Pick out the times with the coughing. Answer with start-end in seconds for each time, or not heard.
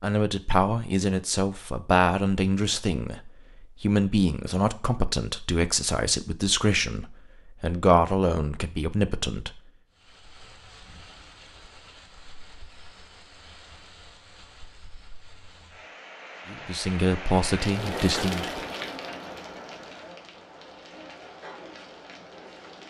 not heard.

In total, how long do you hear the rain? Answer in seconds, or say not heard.
13 s.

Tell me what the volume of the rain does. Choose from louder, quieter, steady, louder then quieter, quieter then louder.
louder then quieter.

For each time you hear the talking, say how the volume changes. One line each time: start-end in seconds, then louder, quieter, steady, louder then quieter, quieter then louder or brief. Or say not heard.
0.0-9.6 steady
16.5-18.6 brief.